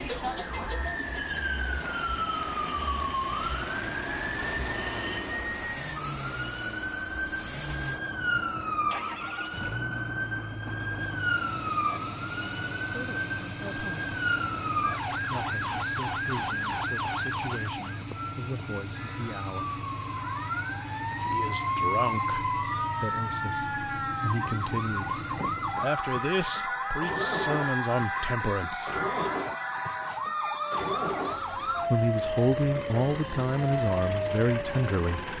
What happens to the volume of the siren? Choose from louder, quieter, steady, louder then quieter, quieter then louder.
steady.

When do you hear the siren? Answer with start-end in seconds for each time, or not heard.
0.0-35.3.